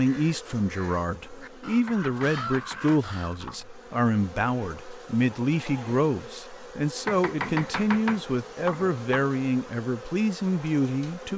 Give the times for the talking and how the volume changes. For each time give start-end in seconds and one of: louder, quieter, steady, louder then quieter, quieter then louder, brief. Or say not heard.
0.0-11.3 steady.